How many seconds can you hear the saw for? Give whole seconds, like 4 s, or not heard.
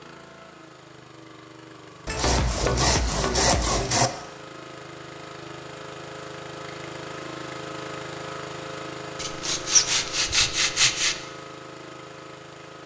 4 s.